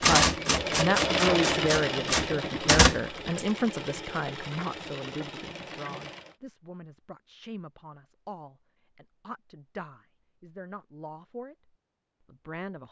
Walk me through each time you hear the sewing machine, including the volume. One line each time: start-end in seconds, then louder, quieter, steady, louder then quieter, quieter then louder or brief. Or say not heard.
0.1-6.3 quieter.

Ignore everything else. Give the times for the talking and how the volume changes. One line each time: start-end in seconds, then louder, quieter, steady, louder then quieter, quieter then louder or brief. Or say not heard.
0.0-12.8 quieter.